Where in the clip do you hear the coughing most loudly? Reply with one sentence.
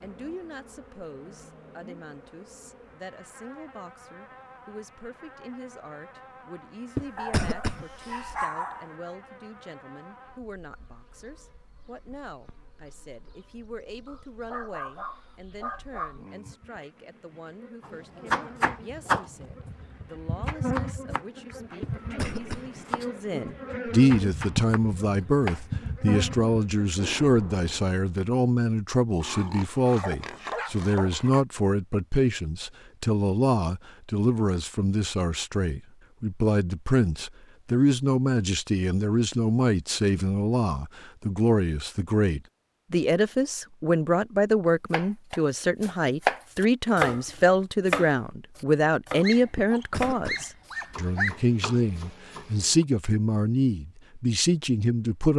The loudest moment of the coughing is at 8 seconds.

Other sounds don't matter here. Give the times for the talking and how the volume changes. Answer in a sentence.
The talking can be heard from 0.0 to 55.3 s, getting louder.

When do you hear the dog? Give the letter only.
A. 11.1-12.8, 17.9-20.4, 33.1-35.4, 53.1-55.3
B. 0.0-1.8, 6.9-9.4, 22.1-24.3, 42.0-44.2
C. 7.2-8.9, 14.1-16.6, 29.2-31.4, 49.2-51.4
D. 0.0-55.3
C.